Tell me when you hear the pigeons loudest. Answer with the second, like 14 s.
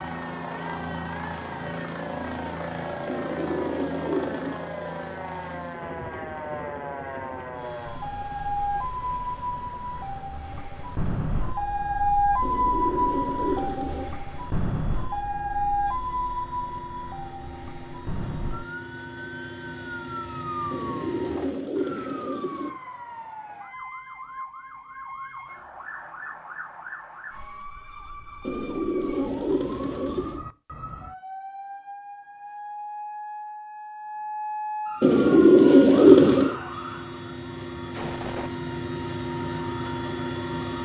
36 s.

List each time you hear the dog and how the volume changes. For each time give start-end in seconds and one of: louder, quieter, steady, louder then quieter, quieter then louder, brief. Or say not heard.
not heard.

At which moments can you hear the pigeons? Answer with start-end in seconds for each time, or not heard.
3.0-4.7, 12.4-14.2, 20.7-22.7, 28.4-30.4, 35.0-36.5.